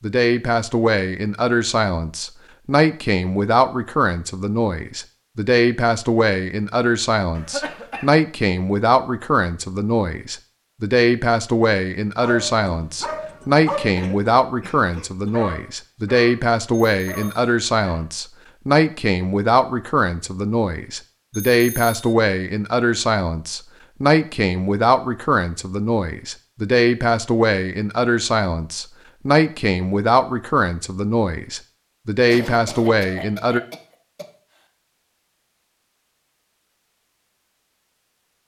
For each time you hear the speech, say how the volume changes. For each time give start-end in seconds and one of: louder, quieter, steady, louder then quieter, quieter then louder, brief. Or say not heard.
0.0-33.6 steady.